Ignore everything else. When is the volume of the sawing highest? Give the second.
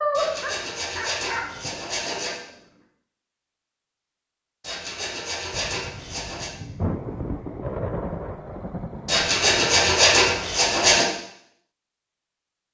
10 s.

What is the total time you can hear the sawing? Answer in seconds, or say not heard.
6 s.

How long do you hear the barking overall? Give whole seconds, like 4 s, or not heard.
3 s.